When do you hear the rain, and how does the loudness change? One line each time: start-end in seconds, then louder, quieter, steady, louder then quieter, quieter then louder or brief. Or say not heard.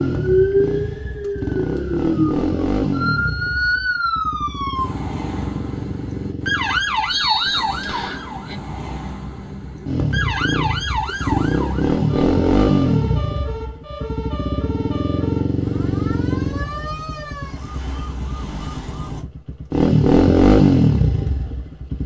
not heard.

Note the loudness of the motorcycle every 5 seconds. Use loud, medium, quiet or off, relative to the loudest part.
medium, quiet, medium, medium, loud.